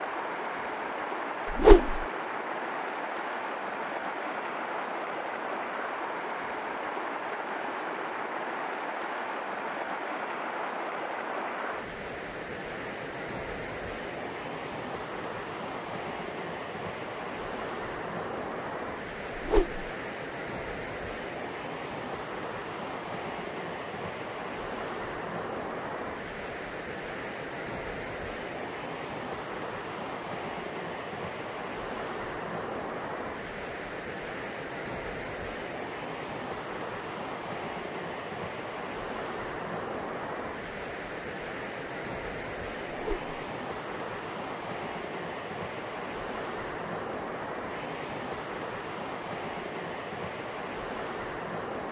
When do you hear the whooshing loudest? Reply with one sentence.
The volume of the whooshing peaks at 2 seconds.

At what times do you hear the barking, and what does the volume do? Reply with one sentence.
The barking can't be heard in this clip.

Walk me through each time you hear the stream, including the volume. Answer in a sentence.
The stream can be heard from 0.0 to 51.8 s, at a steady volume.